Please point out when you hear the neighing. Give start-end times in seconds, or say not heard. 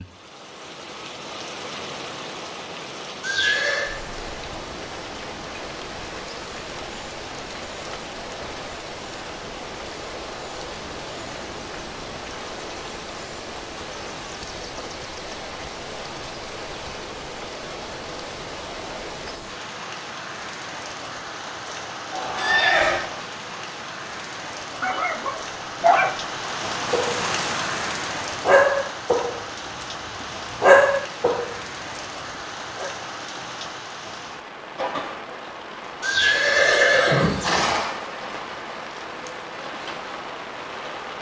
3.2-3.9, 22.1-23.0, 36.0-37.9.